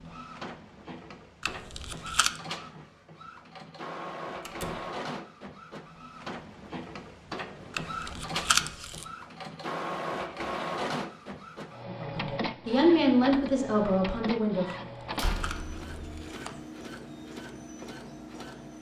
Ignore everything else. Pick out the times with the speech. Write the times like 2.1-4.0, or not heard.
11.8-14.8.